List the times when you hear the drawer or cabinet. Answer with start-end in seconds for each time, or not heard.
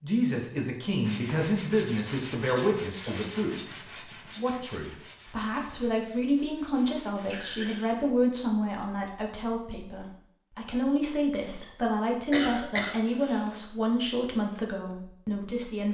not heard.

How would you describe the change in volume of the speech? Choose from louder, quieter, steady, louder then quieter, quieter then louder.
steady.